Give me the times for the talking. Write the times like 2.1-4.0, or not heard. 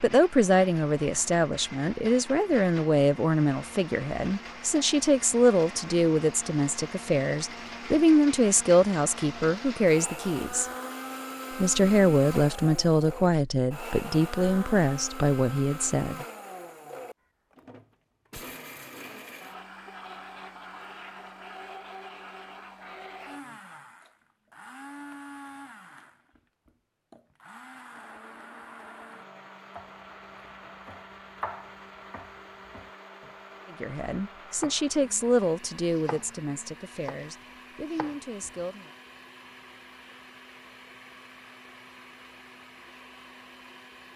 0.0-10.7, 11.6-16.2, 33.8-38.9.